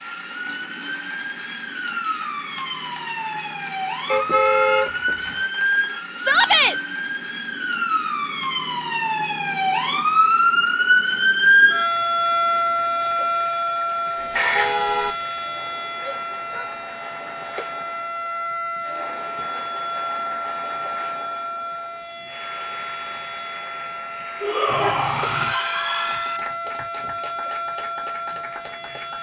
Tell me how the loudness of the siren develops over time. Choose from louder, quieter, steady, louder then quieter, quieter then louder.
louder then quieter.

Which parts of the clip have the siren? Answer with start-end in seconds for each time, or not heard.
0.0-29.1.